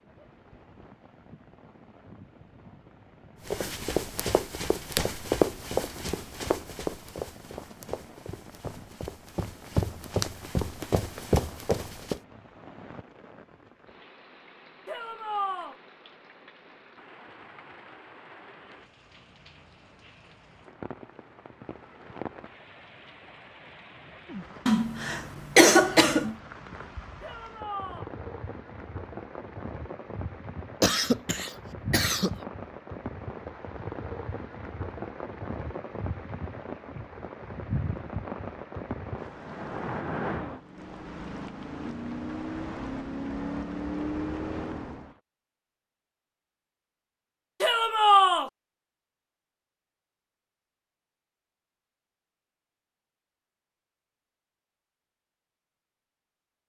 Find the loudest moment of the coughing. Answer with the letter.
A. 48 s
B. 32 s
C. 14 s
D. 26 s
D.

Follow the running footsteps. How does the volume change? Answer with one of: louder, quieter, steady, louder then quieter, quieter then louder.
quieter then louder.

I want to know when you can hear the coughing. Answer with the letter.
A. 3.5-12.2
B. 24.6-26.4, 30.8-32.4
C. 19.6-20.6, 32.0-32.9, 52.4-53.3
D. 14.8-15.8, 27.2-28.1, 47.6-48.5
B.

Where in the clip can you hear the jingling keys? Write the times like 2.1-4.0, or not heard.
not heard.